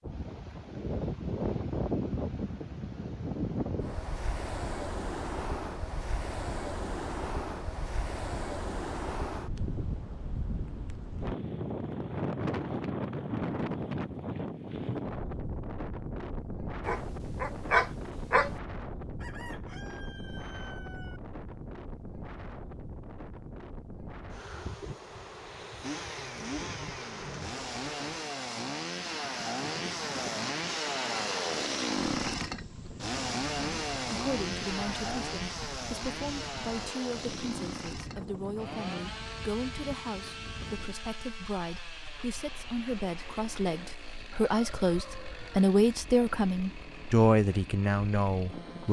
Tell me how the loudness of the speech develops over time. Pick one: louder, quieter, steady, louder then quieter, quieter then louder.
louder.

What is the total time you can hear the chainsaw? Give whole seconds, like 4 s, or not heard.
23 s.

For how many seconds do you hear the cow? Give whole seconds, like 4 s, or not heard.
not heard.